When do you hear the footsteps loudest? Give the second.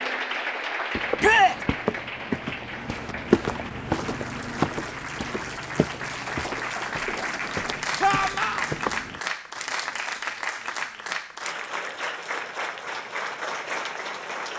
3 s.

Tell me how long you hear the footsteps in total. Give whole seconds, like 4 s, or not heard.
8 s.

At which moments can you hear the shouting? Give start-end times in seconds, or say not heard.
1.2-1.6, 8.0-8.7.